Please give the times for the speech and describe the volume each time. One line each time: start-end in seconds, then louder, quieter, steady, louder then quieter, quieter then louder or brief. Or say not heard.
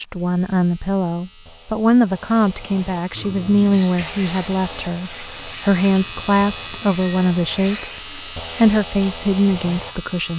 0.0-10.3 steady.